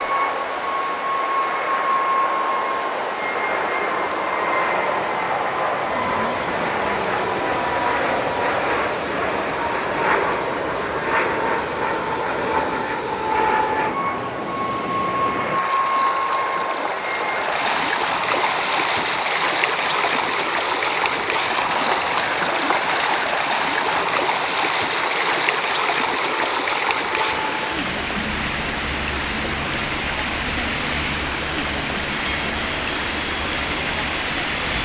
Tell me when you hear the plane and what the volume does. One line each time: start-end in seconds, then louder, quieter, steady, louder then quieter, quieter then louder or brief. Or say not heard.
0.0-34.7 quieter.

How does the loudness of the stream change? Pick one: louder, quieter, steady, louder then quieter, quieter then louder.
louder.